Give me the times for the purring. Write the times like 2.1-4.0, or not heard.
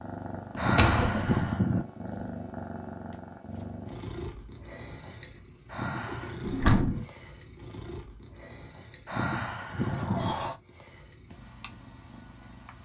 0.0-12.8.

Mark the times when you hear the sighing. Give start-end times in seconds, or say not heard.
0.6-1.9, 5.7-6.5, 9.1-10.3.